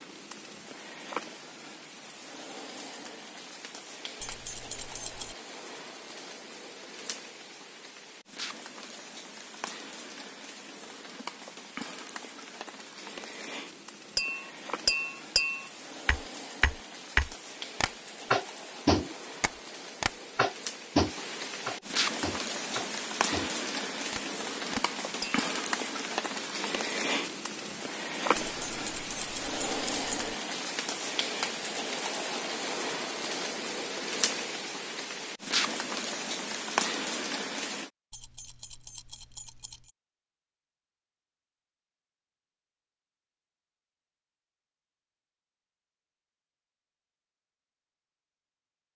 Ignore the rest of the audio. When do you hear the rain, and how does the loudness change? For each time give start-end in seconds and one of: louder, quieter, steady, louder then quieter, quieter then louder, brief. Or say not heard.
0.0-37.9 louder.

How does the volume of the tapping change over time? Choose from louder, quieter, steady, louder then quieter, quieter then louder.
quieter.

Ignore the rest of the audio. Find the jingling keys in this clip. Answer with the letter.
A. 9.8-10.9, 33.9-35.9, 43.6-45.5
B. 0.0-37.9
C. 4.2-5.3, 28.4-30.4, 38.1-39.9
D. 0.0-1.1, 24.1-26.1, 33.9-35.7
C.